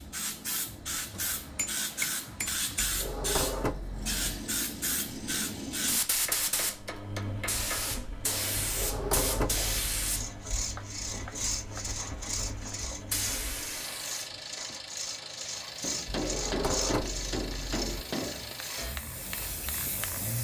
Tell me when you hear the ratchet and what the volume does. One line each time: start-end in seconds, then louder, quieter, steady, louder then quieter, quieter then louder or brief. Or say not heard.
not heard.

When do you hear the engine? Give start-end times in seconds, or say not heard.
0.0-20.4.